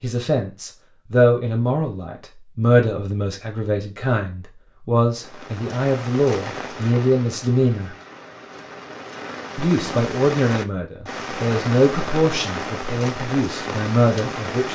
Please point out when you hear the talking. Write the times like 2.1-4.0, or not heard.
0.0-7.9, 9.6-14.7.